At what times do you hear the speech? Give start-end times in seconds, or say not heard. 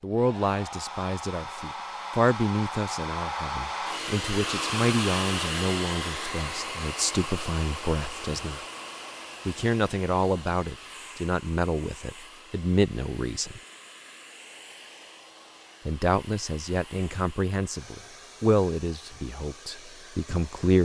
0.0-8.6, 9.4-13.6, 15.8-20.8.